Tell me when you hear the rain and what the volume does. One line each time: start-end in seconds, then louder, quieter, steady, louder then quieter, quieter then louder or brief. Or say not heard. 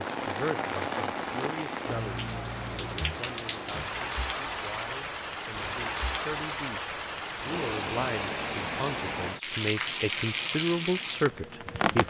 0.0-12.0 steady.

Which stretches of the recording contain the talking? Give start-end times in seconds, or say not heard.
0.2-12.0.